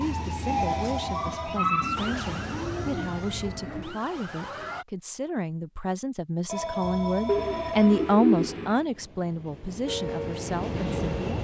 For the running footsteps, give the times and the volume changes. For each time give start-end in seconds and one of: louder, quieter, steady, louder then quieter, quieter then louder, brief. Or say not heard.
not heard.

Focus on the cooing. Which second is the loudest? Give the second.
8 s.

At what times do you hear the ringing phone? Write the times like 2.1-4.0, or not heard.
0.6-1.6, 6.5-8.2.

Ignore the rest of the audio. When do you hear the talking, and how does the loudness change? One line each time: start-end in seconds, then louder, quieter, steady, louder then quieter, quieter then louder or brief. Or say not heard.
0.0-11.2 louder then quieter.